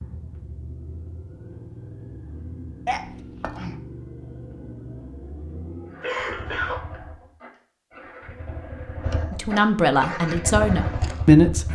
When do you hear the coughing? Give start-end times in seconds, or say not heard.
2.9-3.8, 6.0-6.8.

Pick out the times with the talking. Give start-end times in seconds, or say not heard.
9.3-11.7.